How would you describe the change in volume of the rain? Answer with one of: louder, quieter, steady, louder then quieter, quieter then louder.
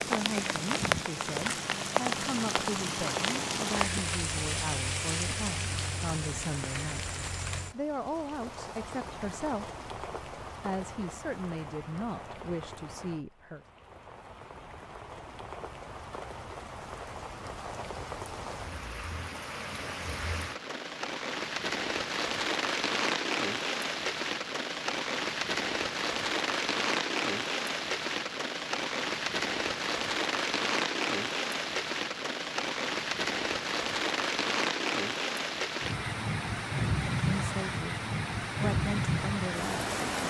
quieter then louder.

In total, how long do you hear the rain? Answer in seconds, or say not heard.
40 s.